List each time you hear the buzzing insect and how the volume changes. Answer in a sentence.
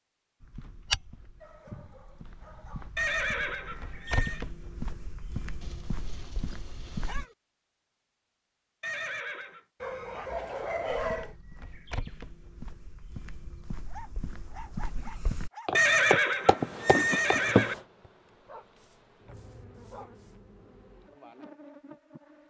You can hear the buzzing insect from 16.6 to 22.4 s, getting quieter then louder.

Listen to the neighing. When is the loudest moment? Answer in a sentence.
The loudest moment of the neighing is at 16 seconds.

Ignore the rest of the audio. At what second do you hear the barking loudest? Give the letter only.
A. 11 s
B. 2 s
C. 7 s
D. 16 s
A.